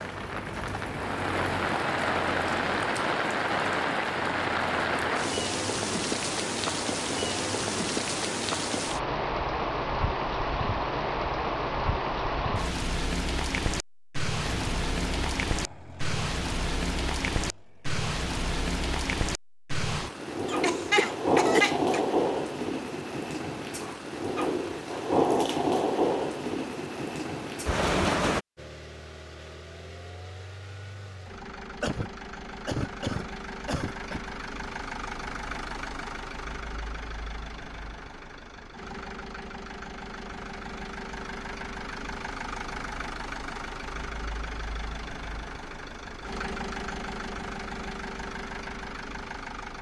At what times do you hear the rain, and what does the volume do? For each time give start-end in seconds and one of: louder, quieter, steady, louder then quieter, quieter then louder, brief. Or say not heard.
0.0-28.4 steady.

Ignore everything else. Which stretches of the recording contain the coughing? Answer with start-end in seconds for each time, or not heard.
20.4-22.0, 31.8-34.2.